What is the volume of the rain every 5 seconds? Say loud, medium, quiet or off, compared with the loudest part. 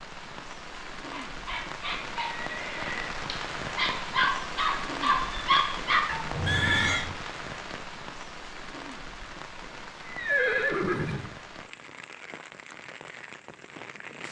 loud, loud, medium.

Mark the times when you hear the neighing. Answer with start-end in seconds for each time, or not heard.
2.3-3.1, 6.5-7.1, 10.0-11.3.